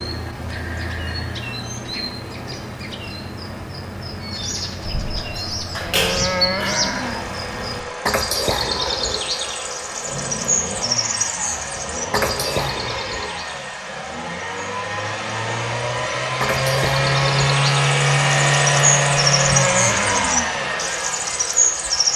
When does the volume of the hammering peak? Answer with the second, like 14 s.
6 s.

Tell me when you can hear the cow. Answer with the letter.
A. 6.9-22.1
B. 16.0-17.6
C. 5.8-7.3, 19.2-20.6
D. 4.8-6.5
C.